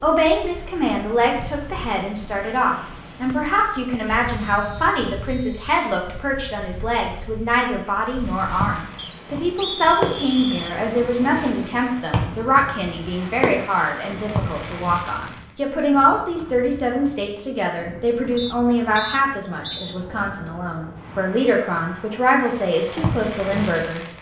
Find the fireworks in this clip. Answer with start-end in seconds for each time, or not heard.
8.2-15.3, 22.6-24.1.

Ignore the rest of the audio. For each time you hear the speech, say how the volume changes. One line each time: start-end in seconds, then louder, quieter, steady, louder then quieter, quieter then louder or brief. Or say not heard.
0.0-24.1 steady.